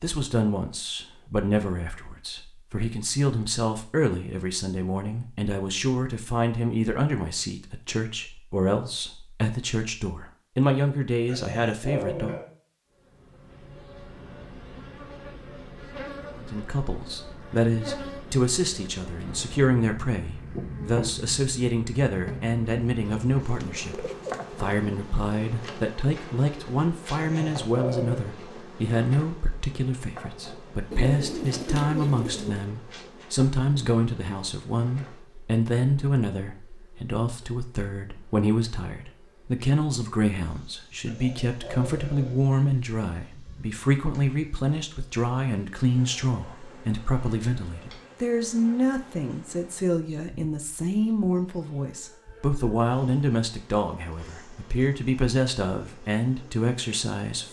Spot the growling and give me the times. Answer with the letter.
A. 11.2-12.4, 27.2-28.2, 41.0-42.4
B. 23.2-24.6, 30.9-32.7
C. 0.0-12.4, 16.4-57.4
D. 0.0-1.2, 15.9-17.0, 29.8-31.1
A.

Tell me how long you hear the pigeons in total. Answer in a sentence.
The pigeons can be heard for 3 seconds in total.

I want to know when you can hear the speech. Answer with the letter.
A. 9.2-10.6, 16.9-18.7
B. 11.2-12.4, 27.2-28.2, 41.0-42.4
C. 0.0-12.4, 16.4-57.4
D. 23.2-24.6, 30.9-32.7
C.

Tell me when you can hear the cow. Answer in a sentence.
You can't hear the cow here.